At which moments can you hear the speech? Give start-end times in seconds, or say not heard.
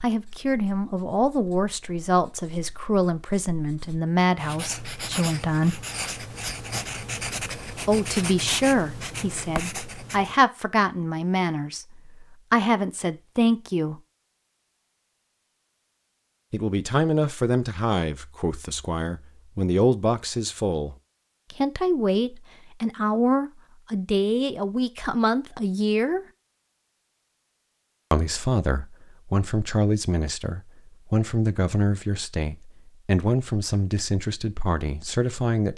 0.0-5.8, 7.8-14.0, 16.5-26.2, 28.1-35.7.